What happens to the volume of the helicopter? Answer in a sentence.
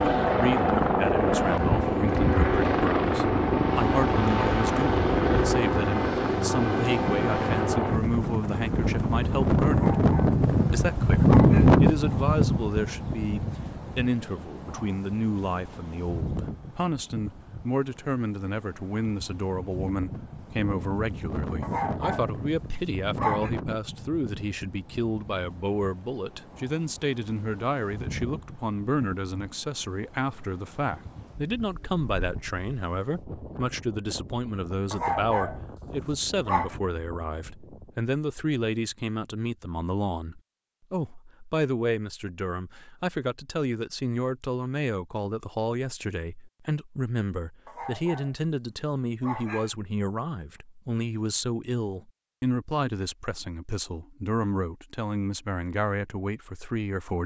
The volume of the helicopter goes down.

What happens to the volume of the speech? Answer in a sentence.
The volume of the speech stays about the same.